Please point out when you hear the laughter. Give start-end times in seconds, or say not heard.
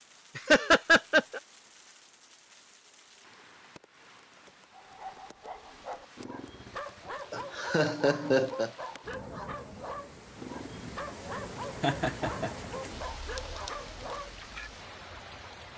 0.3-1.4, 7.3-8.7, 11.8-12.7.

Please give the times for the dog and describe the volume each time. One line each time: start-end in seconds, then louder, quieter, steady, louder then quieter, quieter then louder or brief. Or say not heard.
4.7-14.7 steady.